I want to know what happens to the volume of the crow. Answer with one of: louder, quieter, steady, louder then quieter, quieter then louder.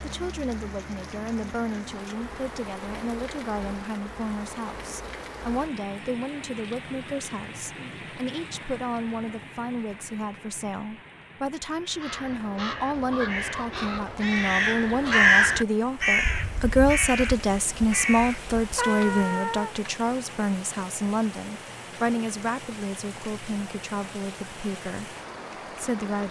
louder then quieter.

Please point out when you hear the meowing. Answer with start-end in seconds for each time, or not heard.
18.8-19.9.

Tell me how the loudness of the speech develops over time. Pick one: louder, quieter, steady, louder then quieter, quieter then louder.
louder then quieter.